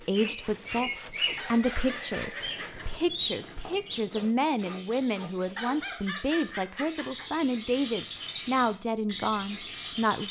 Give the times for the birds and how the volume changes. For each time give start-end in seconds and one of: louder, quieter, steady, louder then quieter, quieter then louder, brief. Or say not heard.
0.0-10.2 quieter then louder.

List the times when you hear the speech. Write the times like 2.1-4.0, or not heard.
0.0-10.2.